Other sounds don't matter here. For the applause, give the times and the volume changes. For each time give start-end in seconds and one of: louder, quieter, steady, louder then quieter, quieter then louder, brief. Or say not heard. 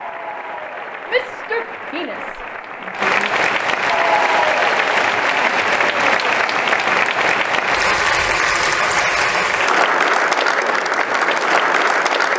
0.0-12.3 louder.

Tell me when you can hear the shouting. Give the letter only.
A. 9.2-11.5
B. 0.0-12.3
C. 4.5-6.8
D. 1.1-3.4
D.